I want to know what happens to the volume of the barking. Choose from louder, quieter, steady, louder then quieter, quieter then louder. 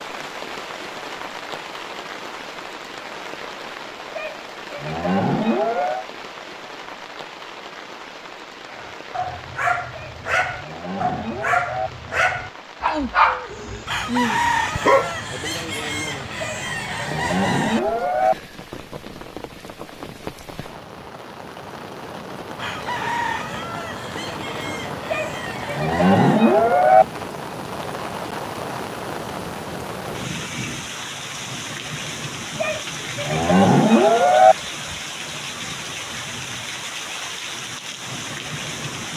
louder then quieter.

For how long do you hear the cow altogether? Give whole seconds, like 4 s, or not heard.
10 s.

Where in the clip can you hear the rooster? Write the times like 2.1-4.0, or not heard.
13.8-17.8, 22.6-26.4.